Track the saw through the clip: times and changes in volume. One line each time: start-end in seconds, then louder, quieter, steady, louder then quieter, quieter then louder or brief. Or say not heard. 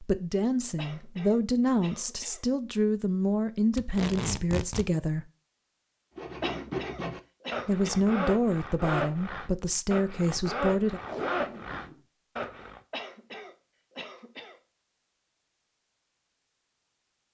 6.2-12.8 steady.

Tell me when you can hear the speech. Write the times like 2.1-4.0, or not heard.
0.0-5.2, 7.7-11.0.